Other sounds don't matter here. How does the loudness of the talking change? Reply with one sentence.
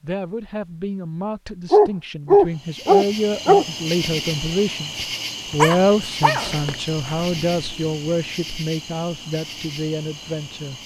The volume of the talking goes up, then down.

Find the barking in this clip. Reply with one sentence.
The barking can be heard from 1.7 to 3.6 s and from 5.6 to 7.8 s.